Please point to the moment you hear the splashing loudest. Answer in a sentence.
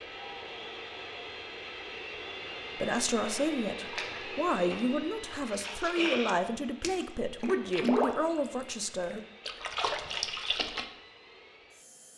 The loudest moment of the splashing is at 8 seconds.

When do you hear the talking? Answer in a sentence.
You can hear the talking from 2.8 to 9.2 s.